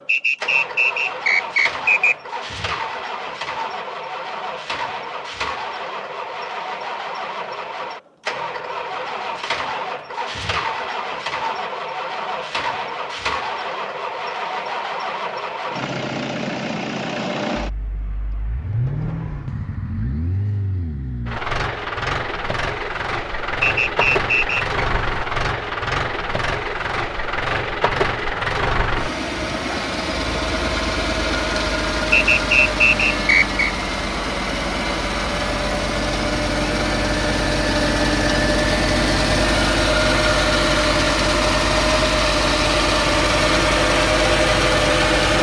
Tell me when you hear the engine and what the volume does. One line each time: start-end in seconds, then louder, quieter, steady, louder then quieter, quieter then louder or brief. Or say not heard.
0.0-45.3 louder.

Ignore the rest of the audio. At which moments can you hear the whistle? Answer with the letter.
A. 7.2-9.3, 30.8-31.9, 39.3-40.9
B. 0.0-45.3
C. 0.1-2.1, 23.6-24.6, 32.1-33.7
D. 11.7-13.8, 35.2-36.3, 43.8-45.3
C.